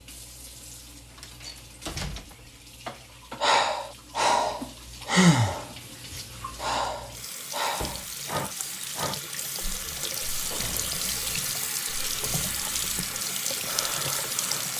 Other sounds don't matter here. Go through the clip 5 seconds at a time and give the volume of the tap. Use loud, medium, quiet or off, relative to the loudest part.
quiet, medium, loud.